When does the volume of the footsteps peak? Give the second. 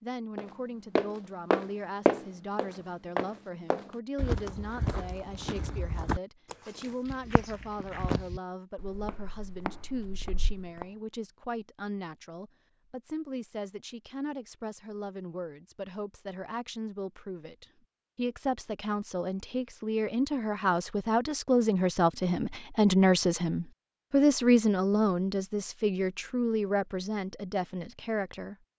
2 s.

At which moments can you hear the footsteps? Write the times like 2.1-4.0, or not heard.
0.3-10.8.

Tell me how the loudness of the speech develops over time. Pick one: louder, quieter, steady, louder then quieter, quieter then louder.
louder.